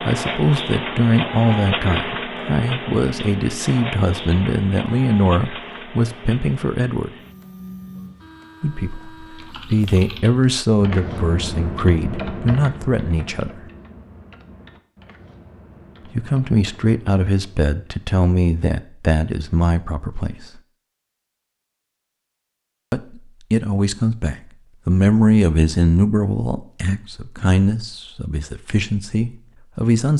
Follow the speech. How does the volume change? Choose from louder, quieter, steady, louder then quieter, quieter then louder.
steady.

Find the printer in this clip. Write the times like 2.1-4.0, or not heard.
0.0-10.1.